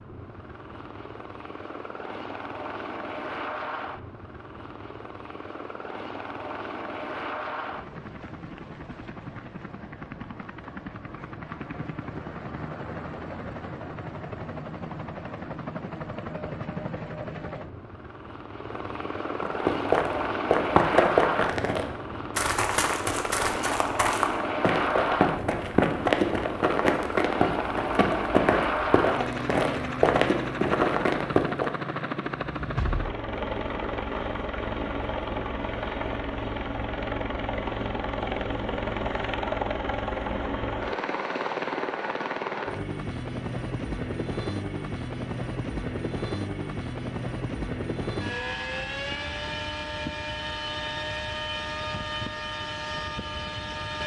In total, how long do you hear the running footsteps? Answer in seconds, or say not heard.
12 s.